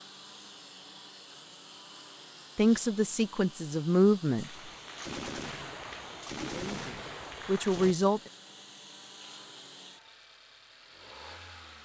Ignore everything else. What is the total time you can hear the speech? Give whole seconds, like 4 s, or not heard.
4 s.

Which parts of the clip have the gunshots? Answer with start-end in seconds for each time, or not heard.
4.4-8.0.